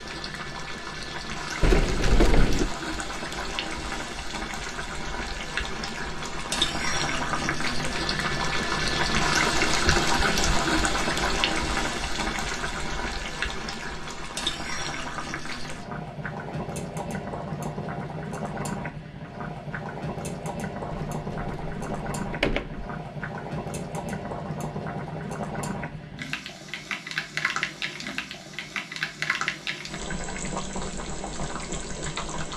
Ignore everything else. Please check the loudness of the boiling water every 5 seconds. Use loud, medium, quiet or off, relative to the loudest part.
medium, loud, loud, medium, medium, medium, medium.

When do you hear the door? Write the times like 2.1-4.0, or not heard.
1.6-2.7, 20.9-22.9.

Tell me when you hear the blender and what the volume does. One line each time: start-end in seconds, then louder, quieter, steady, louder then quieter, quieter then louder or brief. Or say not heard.
not heard.